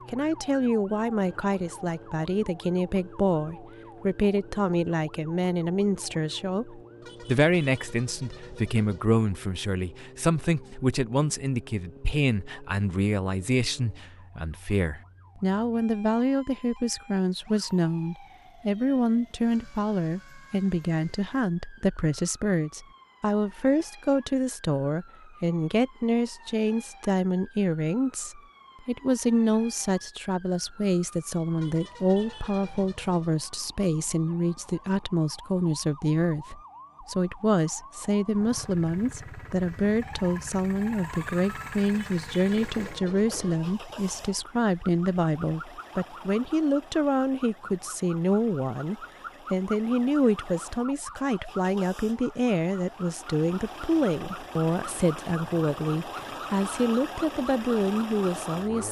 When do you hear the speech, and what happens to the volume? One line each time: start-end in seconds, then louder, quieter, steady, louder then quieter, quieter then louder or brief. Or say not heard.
0.1-58.8 steady.